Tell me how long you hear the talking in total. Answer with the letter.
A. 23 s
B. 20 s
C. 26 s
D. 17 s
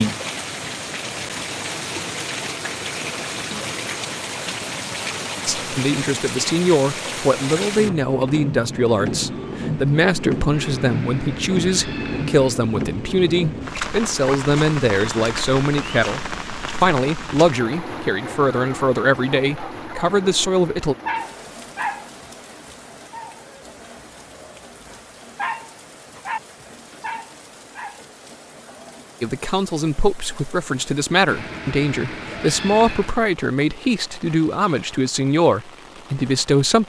A.